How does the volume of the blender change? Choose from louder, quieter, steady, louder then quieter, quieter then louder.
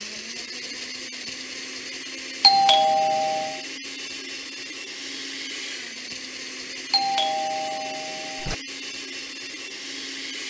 steady.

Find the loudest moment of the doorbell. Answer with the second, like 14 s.
3 s.